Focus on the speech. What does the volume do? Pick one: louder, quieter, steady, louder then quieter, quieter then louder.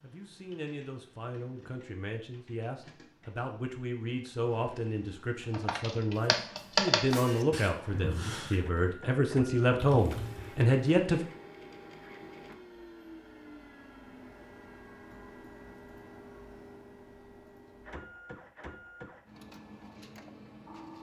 louder.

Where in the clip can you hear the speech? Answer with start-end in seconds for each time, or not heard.
0.0-11.2.